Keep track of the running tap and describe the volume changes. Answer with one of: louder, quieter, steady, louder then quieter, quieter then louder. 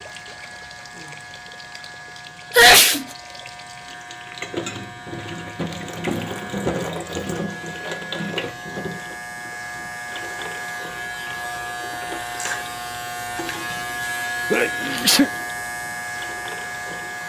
louder then quieter.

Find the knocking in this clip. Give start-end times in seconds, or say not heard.
not heard.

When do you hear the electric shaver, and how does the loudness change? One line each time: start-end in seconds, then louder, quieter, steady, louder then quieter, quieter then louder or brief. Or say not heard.
0.0-17.2 louder.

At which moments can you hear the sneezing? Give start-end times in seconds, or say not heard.
2.5-3.0, 14.5-15.3.